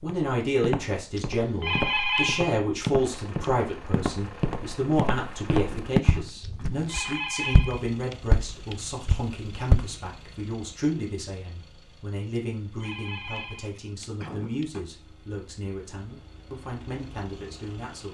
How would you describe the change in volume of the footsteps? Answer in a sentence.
The loudness of the footsteps goes up, then down.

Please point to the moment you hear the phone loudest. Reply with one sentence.
The volume of the phone peaks at 2 seconds.